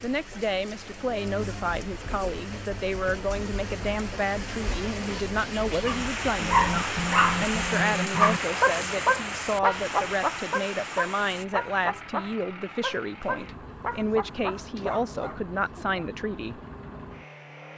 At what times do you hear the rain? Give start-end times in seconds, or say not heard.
0.0-11.4.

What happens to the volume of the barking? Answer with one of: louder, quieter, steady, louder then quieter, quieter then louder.
quieter.